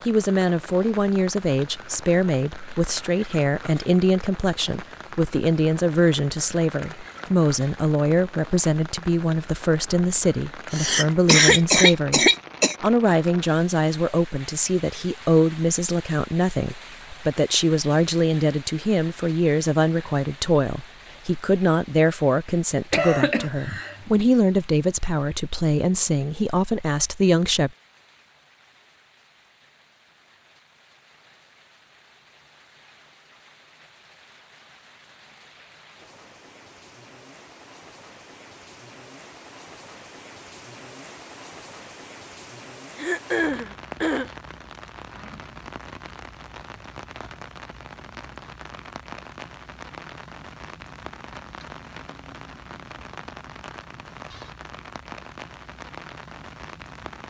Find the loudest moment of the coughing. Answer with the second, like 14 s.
11 s.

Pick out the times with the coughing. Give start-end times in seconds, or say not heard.
10.7-12.8, 22.9-24.2, 43.0-44.3.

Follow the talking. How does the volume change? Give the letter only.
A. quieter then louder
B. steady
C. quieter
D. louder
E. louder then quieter
B.